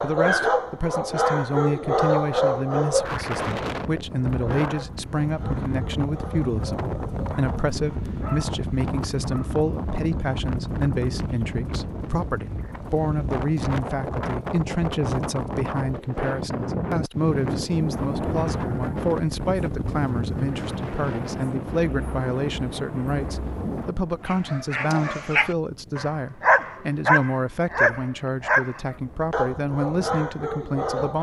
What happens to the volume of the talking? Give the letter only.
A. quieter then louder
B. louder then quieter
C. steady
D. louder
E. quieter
C.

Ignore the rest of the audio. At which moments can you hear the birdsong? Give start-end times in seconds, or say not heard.
not heard.